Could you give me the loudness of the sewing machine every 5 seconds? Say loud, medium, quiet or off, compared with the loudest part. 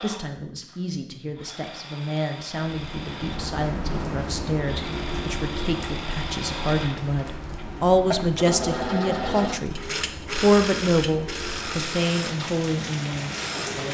medium, loud, loud.